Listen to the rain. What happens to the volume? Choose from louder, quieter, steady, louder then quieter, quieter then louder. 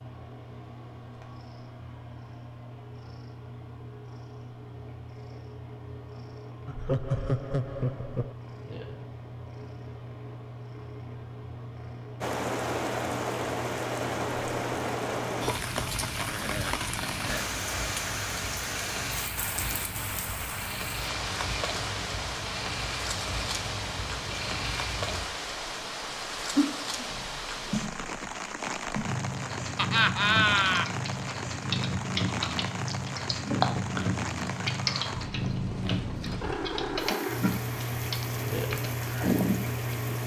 quieter.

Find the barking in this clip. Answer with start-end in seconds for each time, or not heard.
not heard.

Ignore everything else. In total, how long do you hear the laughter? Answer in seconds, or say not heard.
5 s.